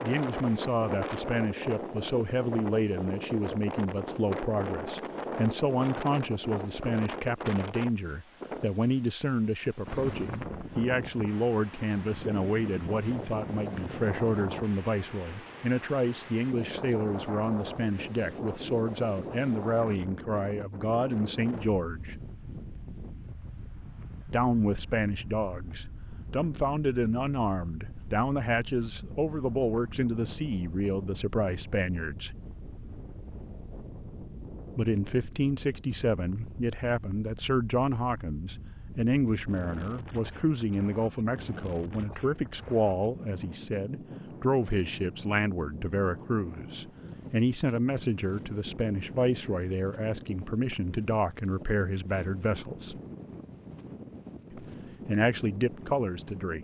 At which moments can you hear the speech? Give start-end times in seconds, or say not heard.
0.0-22.1, 24.3-32.4, 34.8-53.0, 54.5-56.5.